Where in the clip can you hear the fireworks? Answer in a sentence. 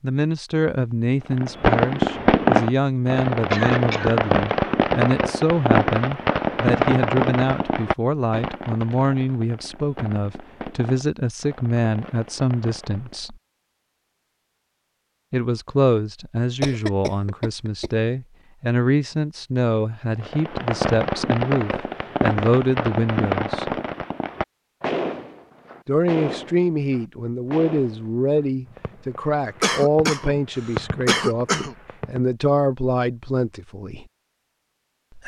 You can hear the fireworks from 1.3 to 13.3 s and from 20.2 to 32.2 s.